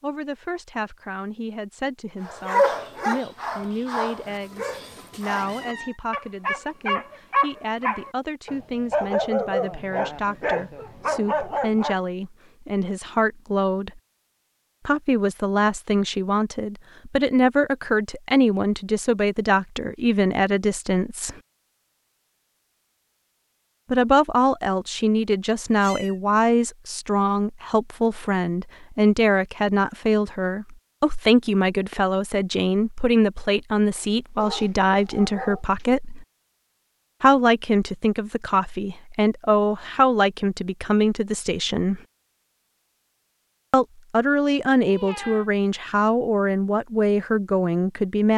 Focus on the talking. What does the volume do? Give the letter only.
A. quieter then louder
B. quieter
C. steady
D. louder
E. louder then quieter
D.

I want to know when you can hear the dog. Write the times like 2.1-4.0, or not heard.
2.2-11.9, 34.4-35.6.